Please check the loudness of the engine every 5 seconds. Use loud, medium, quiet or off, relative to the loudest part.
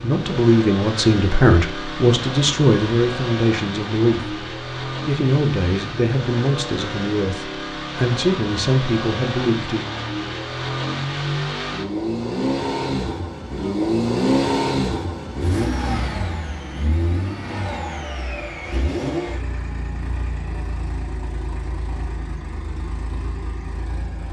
medium, medium, loud, medium, quiet.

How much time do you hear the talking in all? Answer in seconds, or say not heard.
10 s.